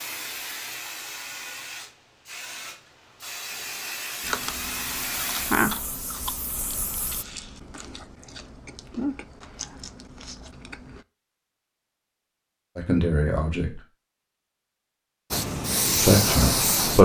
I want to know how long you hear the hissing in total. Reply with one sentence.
The hissing can be heard for 9 seconds in total.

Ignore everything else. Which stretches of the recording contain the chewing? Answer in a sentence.
The chewing can be heard from 4.2 to 11.0 s.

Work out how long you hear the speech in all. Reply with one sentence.
The speech can be heard for 2 seconds in total.